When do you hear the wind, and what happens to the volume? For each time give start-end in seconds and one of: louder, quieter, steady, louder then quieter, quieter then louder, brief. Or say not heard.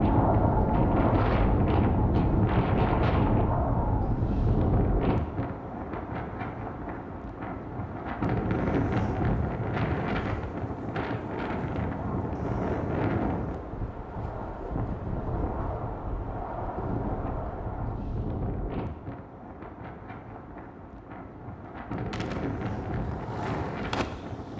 0.0-24.5 quieter.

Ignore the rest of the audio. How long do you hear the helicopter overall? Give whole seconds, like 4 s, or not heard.
not heard.